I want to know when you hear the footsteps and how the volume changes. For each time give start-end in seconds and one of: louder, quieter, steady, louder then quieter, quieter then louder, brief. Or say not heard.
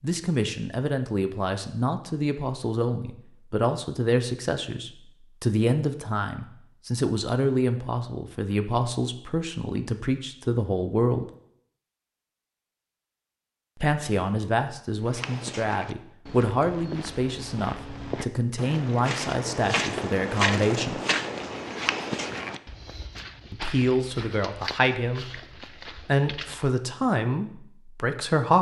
15.0-26.8 louder then quieter.